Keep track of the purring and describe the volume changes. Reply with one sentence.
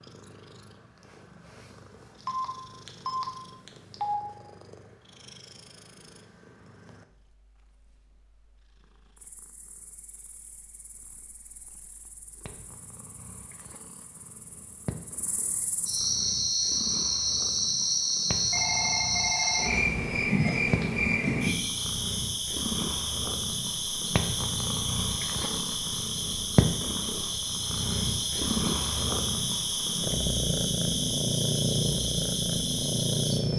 The loudness of the purring goes down, then up.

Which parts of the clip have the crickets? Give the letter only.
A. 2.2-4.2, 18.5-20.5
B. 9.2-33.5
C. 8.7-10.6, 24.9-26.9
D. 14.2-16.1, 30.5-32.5
B.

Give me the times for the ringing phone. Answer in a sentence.
The ringing phone can be heard from 2.2 to 4.2 s and from 18.5 to 20.5 s.